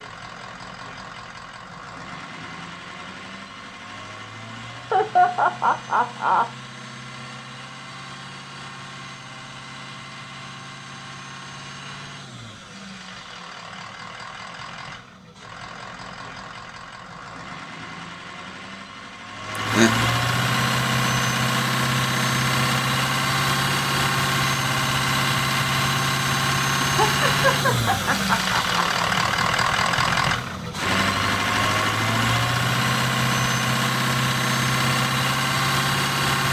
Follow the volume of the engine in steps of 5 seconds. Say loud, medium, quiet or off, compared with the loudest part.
quiet, quiet, quiet, medium, loud, loud, loud, loud.